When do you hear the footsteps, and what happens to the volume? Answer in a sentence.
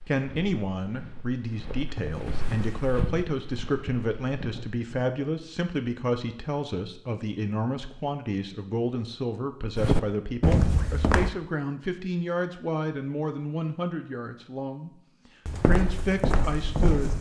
You can hear the footsteps from 0.0 to 4.8 s, getting louder then quieter; briefly from 9.8 to 11.3 s; and briefly from 15.4 to 17.1 s.